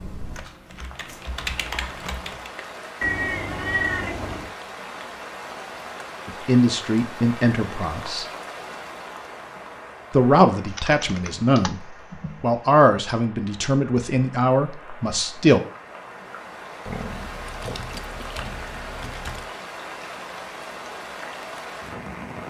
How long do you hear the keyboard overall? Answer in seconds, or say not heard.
7 s.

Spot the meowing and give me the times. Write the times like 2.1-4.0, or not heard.
3.0-4.5.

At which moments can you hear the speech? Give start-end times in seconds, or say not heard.
6.2-8.2, 10.1-15.6.